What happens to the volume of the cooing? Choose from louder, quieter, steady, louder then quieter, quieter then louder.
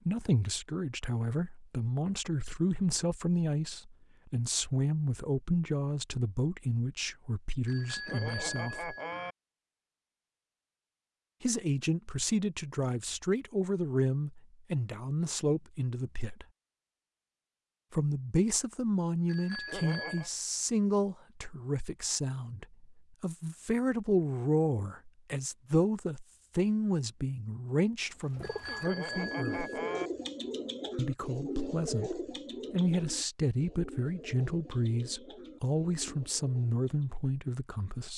quieter.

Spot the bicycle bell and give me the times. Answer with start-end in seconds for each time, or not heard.
7.7-9.3, 19.2-20.3, 28.4-30.1.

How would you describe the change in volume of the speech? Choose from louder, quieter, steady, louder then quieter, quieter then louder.
steady.